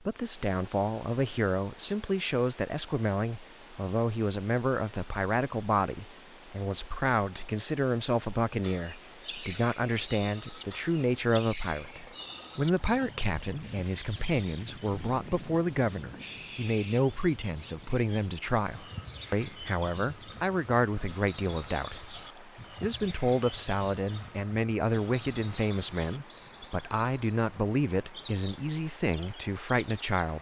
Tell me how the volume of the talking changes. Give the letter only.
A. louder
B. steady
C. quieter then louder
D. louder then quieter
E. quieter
B.